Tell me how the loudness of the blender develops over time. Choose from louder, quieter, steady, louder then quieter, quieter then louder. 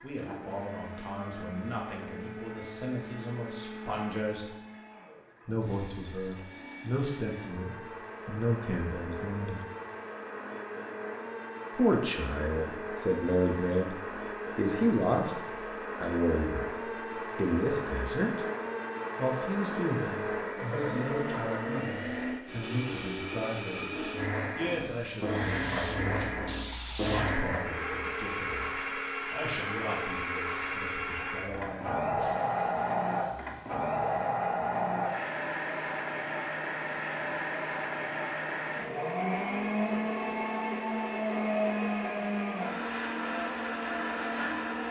louder.